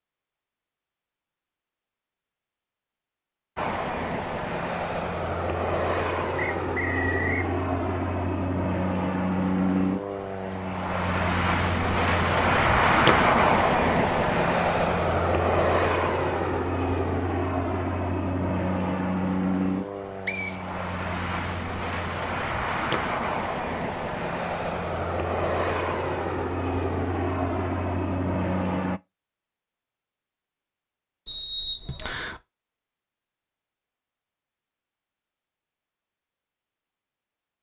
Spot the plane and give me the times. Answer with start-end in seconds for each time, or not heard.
3.5-29.0.